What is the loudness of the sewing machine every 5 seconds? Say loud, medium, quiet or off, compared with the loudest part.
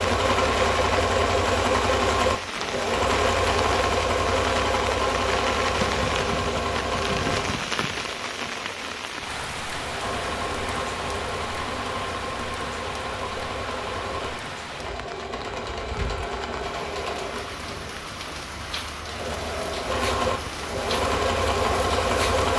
loud, medium, medium, medium, loud.